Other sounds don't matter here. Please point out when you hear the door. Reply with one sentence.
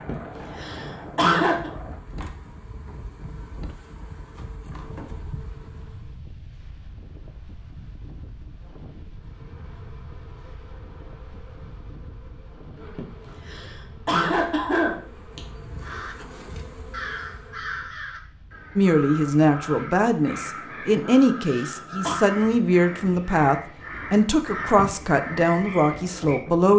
You can't hear the door here.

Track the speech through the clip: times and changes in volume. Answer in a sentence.
You can hear the speech from 18.8 to 26.7 s, at a steady volume.